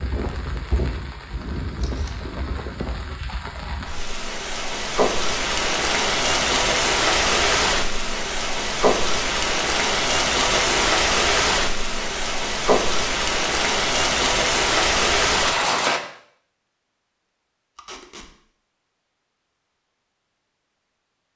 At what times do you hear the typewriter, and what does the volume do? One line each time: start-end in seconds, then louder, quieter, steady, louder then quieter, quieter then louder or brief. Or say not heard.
not heard.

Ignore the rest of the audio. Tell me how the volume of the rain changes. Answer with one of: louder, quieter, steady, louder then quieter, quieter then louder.
louder.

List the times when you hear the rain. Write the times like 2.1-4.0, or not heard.
0.0-16.0.